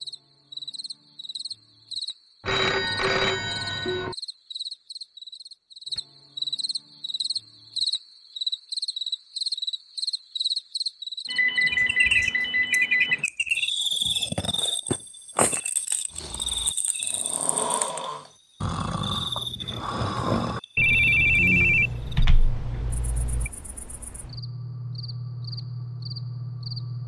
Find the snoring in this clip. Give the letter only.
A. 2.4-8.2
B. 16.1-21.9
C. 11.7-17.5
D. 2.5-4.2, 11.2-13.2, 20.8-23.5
B.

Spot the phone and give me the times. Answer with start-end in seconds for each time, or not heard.
2.5-4.2, 11.2-13.2, 20.8-23.5.